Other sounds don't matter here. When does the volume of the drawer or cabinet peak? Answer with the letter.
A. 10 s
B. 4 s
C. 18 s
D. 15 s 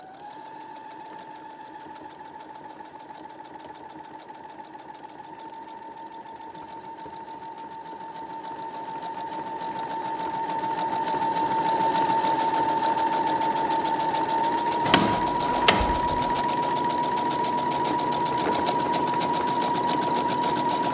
D.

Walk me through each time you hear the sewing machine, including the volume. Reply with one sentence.
The sewing machine can be heard from 0.0 to 20.8 s, getting louder.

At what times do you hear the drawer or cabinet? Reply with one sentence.
You can hear the drawer or cabinet from 14.8 to 16.4 s.